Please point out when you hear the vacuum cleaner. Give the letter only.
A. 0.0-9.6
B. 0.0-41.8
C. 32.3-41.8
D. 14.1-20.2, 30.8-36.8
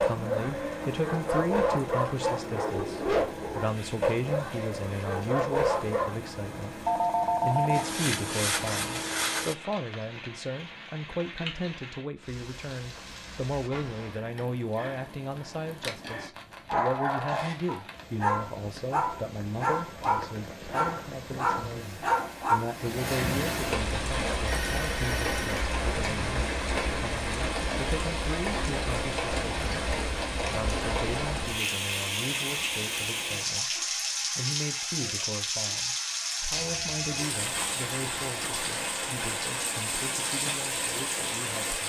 A.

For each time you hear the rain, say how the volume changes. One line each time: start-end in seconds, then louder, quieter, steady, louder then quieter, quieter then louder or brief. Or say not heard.
0.0-41.8 louder.